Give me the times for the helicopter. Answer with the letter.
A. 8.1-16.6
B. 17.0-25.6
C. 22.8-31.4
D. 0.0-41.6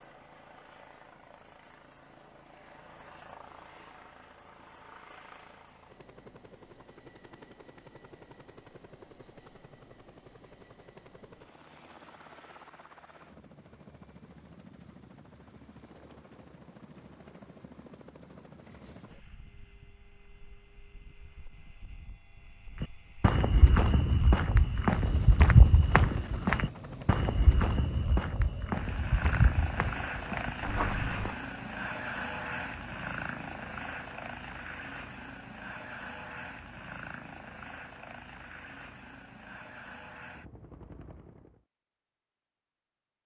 D.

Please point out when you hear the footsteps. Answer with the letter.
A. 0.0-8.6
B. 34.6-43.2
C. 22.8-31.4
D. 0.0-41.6
C.